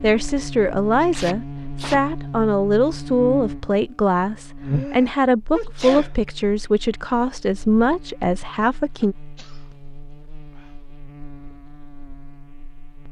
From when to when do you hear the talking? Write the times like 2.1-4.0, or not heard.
0.0-9.2.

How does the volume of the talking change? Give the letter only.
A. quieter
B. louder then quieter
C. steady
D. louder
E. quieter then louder
C.